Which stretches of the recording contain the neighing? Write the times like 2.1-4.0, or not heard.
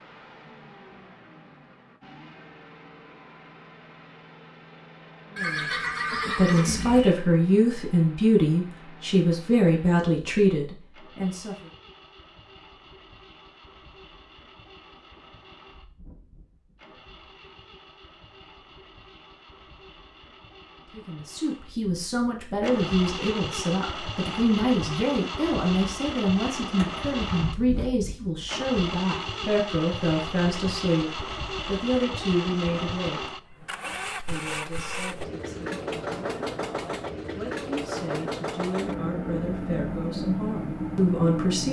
5.3-7.2, 26.8-27.9.